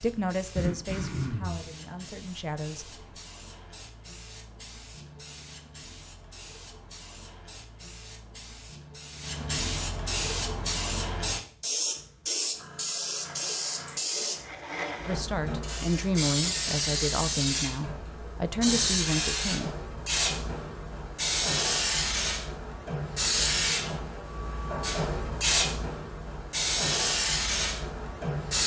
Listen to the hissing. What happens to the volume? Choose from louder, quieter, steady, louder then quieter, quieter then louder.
louder.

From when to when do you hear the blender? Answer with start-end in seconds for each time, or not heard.
13.2-15.2.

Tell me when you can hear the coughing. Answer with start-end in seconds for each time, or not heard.
0.6-1.6.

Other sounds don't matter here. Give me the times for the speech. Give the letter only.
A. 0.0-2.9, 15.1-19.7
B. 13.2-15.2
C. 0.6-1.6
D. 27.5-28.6
A.